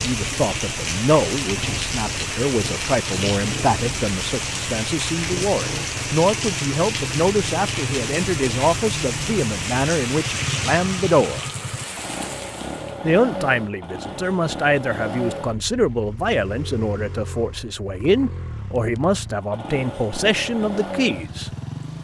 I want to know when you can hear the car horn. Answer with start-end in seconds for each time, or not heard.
not heard.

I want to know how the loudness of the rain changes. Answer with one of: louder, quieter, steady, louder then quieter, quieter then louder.
steady.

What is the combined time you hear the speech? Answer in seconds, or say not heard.
20 s.